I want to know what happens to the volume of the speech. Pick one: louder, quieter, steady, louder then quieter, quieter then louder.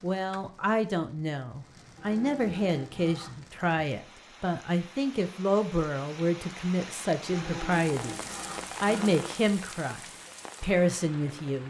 steady.